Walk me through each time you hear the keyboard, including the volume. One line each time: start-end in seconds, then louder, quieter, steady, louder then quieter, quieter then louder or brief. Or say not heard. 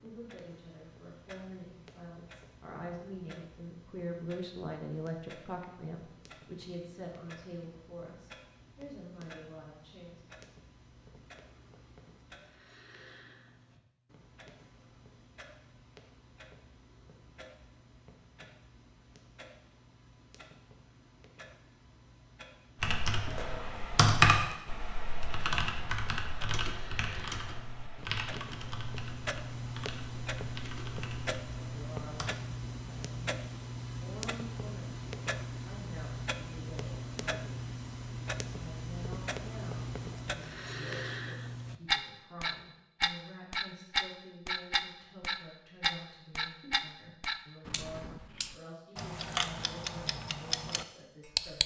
22.8-32.3 quieter.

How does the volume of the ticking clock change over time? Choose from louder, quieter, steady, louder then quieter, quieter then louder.
louder.